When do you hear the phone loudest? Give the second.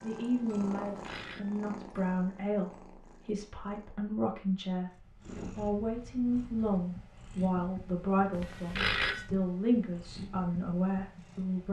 9 s.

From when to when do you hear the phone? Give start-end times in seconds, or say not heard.
0.8-1.4, 8.3-9.3.